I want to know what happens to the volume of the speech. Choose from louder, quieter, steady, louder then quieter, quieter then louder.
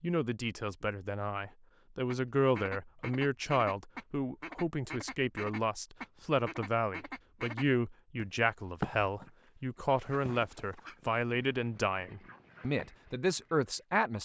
steady.